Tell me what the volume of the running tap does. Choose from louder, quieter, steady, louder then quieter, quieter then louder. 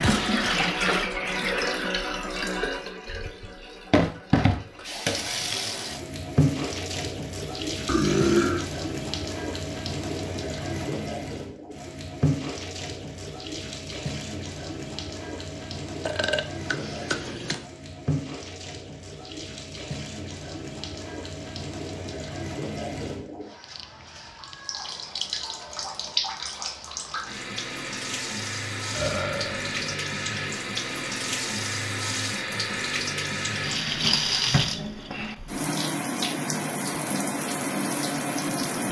quieter then louder.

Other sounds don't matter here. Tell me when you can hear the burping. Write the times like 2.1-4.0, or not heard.
7.8-8.7, 16.1-17.6, 28.9-30.0.